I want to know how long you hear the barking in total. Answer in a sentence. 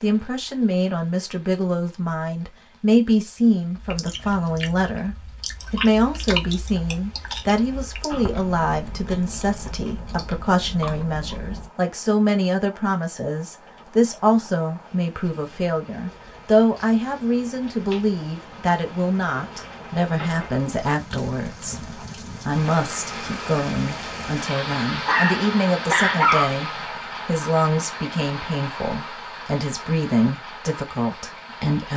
You can hear the barking for 2 seconds altogether.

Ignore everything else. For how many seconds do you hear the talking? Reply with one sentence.
The talking can be heard for 32 seconds in total.